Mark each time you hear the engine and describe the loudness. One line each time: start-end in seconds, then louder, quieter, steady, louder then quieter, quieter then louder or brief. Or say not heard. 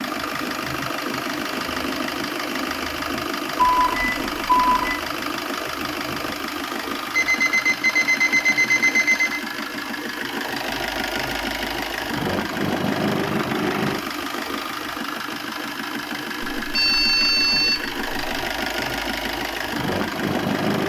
0.0-20.8 steady.